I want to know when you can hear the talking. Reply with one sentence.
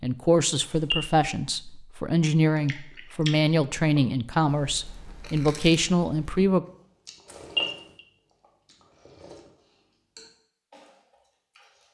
You can hear the talking from 0.0 to 6.7 s.